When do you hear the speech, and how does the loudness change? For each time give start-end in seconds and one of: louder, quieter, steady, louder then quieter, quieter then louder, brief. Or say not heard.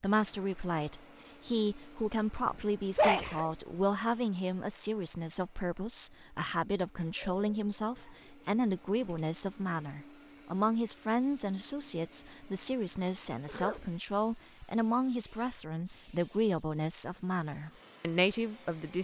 0.0-18.9 steady.